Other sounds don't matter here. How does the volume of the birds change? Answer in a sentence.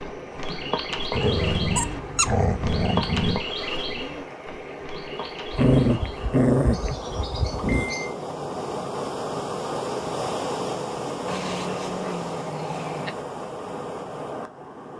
The volume of the birds goes down.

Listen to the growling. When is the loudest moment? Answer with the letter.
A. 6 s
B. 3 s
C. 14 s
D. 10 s
A.